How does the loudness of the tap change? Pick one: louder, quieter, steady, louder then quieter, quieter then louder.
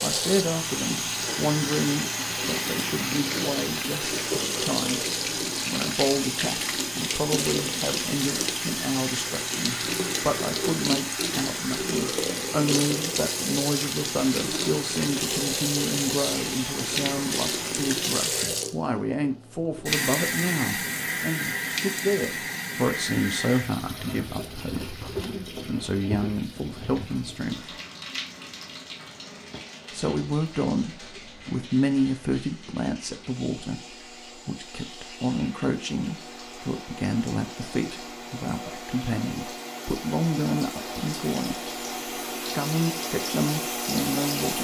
quieter then louder.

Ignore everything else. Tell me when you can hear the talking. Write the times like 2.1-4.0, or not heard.
0.0-5.0, 5.7-27.8, 29.9-41.5, 42.5-44.5.